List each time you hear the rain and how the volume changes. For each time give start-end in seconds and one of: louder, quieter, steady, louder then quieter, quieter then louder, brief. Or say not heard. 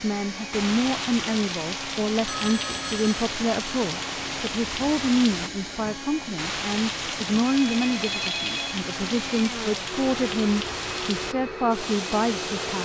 0.0-12.7 steady.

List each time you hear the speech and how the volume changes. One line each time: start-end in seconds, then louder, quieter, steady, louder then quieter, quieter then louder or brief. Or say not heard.
0.0-12.7 steady.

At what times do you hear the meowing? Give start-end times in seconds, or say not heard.
not heard.